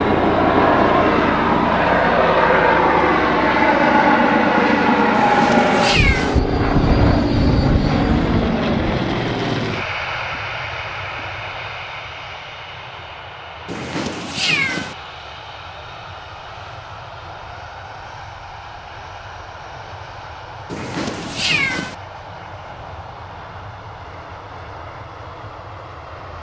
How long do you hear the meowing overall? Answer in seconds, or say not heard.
4 s.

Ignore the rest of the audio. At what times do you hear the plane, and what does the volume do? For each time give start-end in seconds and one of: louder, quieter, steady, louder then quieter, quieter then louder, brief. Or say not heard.
0.0-26.3 quieter.